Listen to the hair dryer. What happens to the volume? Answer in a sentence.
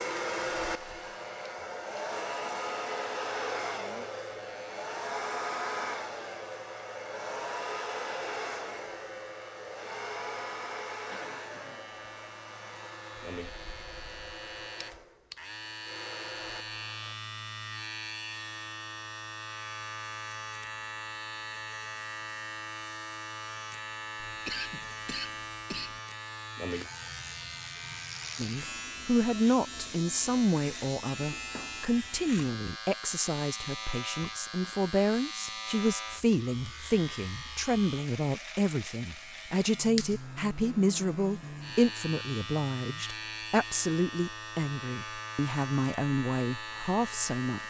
The loudness of the hair dryer goes down.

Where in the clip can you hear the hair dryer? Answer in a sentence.
The hair dryer can be heard from 0.0 to 17.1 s.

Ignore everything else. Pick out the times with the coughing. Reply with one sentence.
You can hear the coughing from 10.9 to 11.9 s and from 24.1 to 26.0 s.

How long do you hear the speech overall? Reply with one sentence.
The speech can be heard for 19 seconds in total.